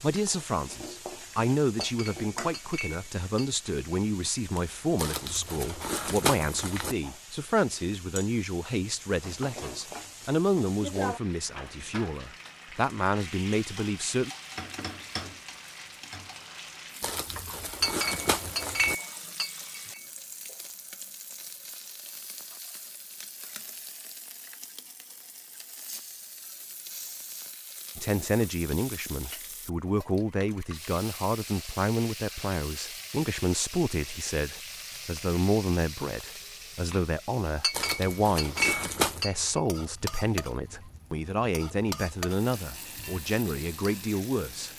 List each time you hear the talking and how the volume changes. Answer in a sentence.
The talking can be heard from 0.0 to 14.3 s, at a steady volume; and from 27.9 to 44.7 s, at a steady volume.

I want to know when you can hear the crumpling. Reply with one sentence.
You can hear the crumpling from 5.0 to 7.0 s, from 17.0 to 18.9 s and from 37.7 to 39.2 s.